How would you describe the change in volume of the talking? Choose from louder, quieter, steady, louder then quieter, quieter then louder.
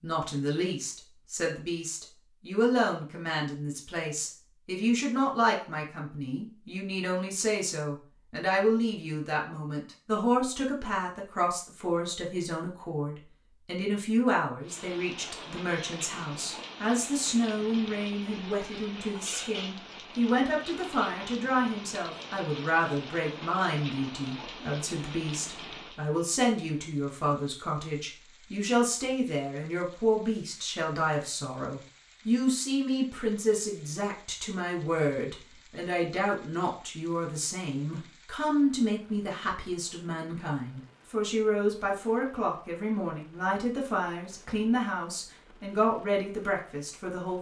steady.